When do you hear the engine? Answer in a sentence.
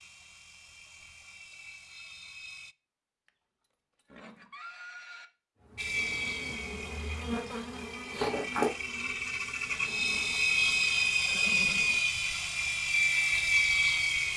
The engine can be heard from 0.0 to 2.8 s and from 5.8 to 14.3 s.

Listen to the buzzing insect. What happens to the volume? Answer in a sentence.
The volume of the buzzing insect goes up, then down.